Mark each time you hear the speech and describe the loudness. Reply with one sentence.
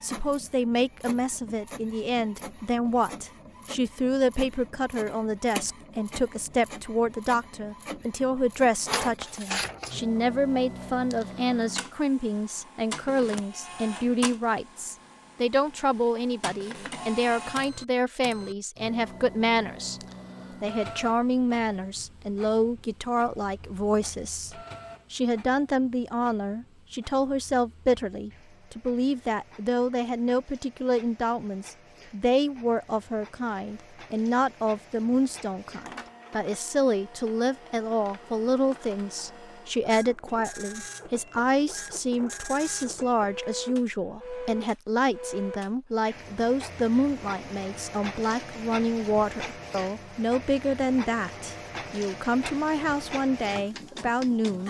The speech can be heard from 0.0 to 20.0 s, at a steady volume; and from 20.6 to 54.6 s, at a steady volume.